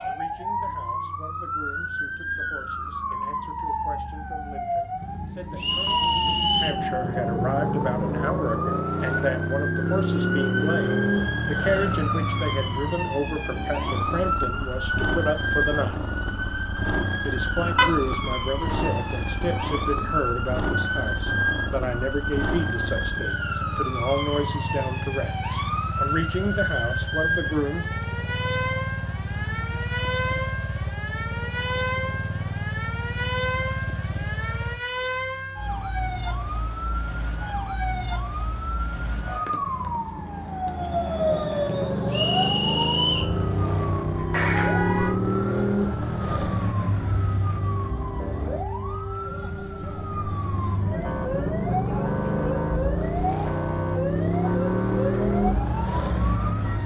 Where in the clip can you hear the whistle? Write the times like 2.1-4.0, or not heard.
5.5-6.8, 42.1-43.4.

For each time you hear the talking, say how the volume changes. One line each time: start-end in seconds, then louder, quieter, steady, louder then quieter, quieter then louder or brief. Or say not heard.
0.0-16.0 louder
17.2-27.9 steady.